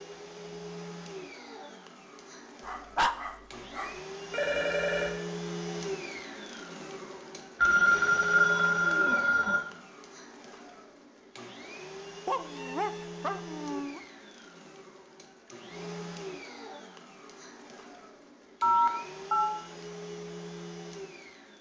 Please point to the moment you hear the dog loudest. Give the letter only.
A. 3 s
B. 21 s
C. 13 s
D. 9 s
A.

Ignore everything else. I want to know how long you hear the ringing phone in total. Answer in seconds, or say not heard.
4 s.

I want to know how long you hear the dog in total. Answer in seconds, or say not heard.
3 s.